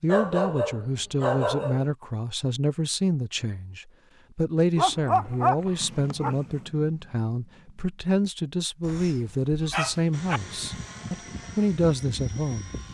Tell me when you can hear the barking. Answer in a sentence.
The barking can be heard from 0.1 to 1.9 s, from 4.8 to 6.3 s and from 8.8 to 10.4 s.